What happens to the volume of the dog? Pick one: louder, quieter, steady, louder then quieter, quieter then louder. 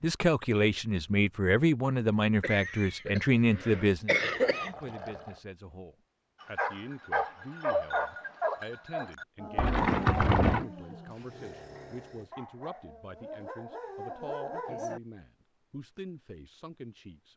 quieter then louder.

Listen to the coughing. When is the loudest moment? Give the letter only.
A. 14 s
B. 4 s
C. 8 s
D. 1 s
B.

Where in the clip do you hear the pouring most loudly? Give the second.
10 s.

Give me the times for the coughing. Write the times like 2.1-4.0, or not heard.
2.4-4.9.